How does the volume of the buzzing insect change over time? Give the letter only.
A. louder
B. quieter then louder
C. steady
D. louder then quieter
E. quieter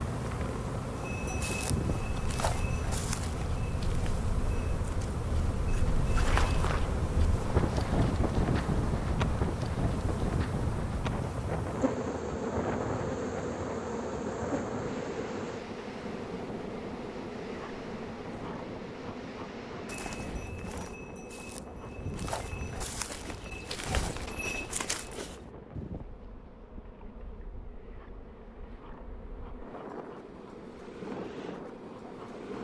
E.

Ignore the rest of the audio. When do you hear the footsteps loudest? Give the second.
6 s.